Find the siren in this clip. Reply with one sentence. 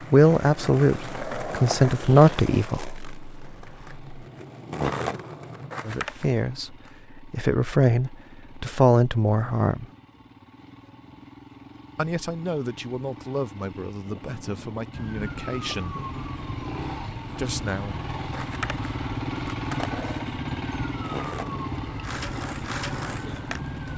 The siren can be heard from 14.9 to 23.9 s.